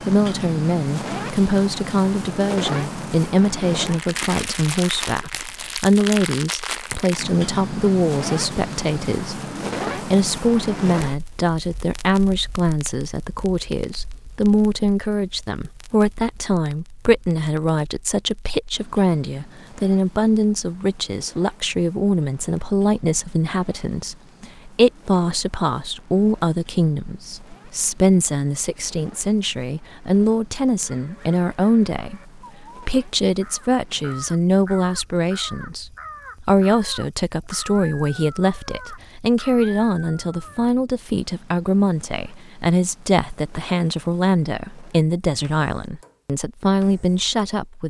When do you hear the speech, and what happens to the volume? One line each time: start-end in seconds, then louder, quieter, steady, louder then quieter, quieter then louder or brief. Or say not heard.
0.1-47.8 steady.